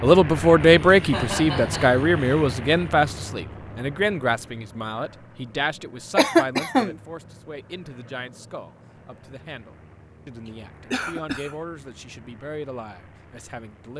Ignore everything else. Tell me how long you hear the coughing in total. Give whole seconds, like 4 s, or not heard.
4 s.